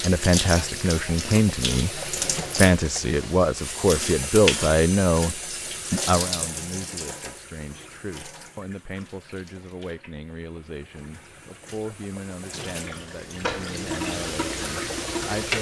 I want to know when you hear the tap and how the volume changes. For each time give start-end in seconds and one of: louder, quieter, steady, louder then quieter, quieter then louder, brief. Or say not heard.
0.0-15.5 quieter then louder.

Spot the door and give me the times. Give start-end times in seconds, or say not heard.
13.4-14.1.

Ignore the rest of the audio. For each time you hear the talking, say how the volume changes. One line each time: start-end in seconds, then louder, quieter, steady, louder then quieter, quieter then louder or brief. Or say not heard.
0.0-15.5 quieter.